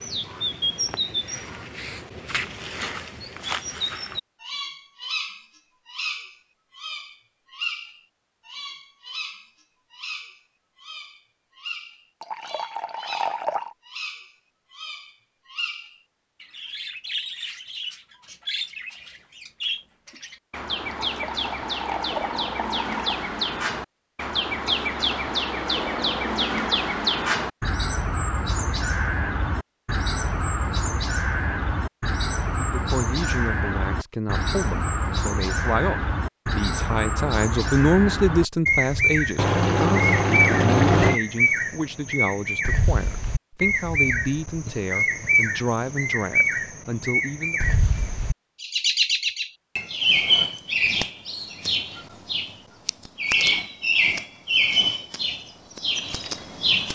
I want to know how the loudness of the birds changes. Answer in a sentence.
The loudness of the birds goes up.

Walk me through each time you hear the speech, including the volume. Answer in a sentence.
The speech can be heard from 32.7 to 47.6 s, getting louder then quieter.